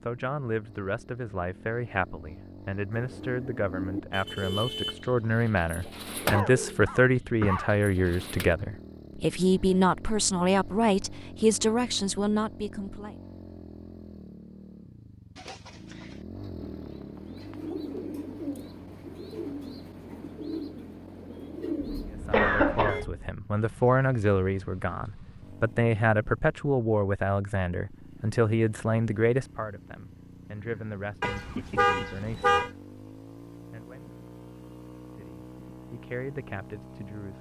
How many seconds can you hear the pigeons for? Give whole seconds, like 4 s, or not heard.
13 s.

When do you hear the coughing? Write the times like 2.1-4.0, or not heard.
6.2-7.8, 22.3-23.0, 30.6-32.1.